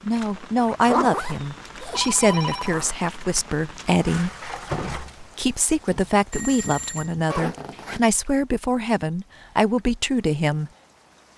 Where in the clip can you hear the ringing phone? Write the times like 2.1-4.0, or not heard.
1.9-3.5, 6.3-7.2.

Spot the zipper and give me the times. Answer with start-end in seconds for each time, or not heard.
0.6-3.0, 7.3-8.0.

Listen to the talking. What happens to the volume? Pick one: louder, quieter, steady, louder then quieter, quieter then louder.
steady.